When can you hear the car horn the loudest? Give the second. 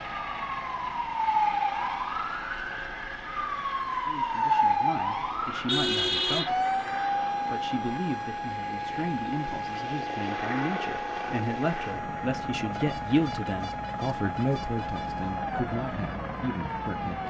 6 s.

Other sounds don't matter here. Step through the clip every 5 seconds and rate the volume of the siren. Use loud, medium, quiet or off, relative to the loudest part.
loud, loud, medium, medium.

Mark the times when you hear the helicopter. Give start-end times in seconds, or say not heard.
0.0-17.2.